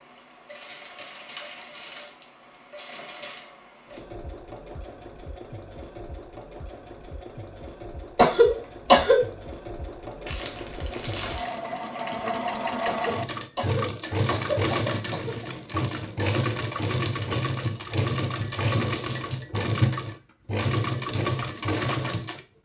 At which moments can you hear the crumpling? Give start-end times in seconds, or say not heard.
1.7-2.2, 10.2-11.6, 18.8-19.4.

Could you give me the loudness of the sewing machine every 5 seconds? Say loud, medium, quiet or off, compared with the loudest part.
quiet, quiet, loud, loud, loud.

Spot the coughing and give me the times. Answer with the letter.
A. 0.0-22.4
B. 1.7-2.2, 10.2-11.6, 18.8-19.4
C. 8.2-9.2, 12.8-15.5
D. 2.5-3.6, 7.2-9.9
C.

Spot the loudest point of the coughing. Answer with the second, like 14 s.
9 s.